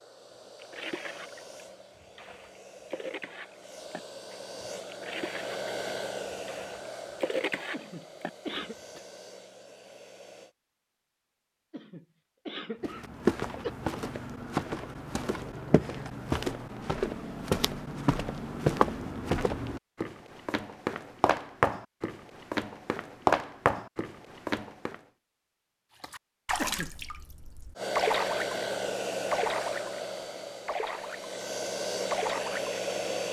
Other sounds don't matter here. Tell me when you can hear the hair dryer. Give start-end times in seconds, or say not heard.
0.0-10.6, 27.8-33.2.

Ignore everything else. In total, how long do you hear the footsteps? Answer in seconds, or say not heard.
12 s.